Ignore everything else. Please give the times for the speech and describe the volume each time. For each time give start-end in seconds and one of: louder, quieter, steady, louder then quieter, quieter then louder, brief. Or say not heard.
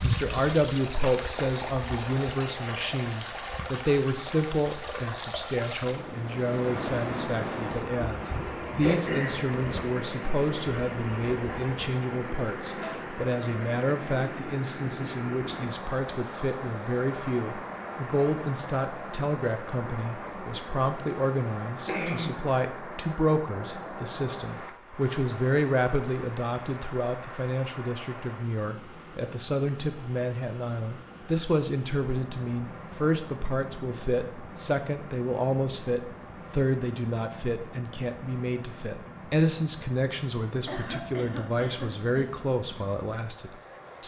0.0-44.0 steady.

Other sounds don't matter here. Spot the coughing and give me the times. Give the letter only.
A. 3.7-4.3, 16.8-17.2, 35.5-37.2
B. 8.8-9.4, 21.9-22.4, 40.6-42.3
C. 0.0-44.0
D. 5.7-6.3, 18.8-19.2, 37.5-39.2
B.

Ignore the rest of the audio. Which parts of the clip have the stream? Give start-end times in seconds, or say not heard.
0.0-44.0.